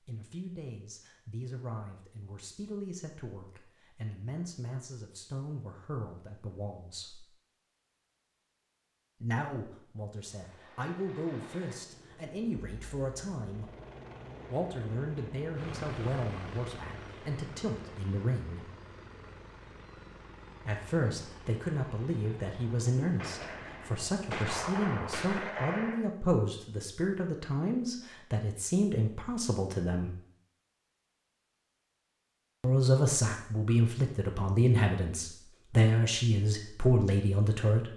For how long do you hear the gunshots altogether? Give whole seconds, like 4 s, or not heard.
3 s.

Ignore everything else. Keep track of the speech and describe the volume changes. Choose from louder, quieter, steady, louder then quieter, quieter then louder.
louder.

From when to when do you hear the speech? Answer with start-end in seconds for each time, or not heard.
0.1-7.2, 9.2-13.7, 14.5-18.7, 20.6-30.1, 32.6-37.9.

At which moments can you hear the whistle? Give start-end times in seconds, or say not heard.
not heard.